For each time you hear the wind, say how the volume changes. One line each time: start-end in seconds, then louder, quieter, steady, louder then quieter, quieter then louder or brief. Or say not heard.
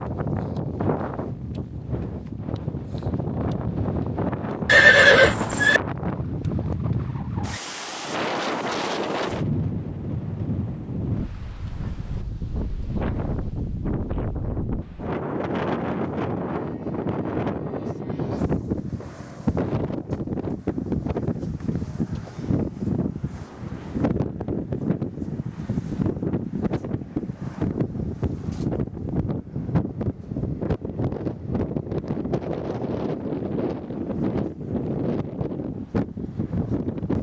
0.0-37.1 steady.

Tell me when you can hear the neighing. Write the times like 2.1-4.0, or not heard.
4.7-5.8.